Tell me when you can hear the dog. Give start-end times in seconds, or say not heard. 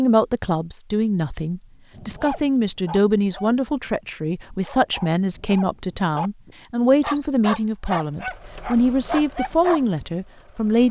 1.9-10.1.